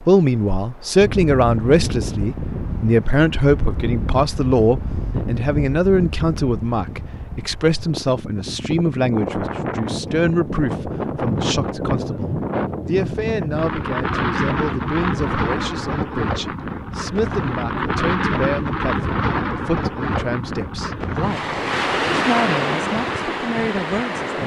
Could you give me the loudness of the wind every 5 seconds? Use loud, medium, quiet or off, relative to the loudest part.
medium, medium, loud, loud, loud.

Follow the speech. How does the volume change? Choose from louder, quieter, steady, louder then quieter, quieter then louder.
quieter.